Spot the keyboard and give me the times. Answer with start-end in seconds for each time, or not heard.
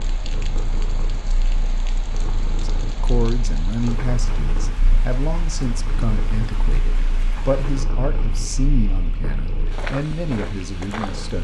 not heard.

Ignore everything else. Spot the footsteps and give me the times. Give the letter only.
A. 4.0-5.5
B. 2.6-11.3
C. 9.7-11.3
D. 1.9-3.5
C.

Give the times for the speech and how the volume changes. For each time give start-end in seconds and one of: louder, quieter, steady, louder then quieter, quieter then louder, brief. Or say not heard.
2.6-11.3 steady.